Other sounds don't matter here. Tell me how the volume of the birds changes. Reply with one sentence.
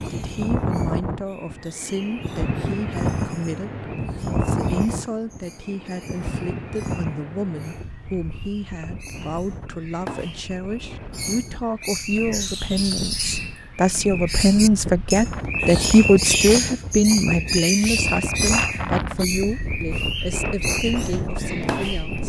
The loudness of the birds goes up.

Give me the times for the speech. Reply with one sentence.
You can hear the speech from 0.1 to 22.2 s.